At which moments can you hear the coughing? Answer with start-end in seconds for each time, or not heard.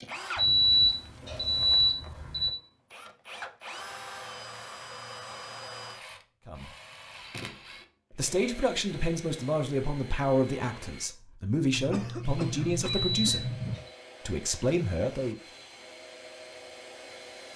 11.8-13.8.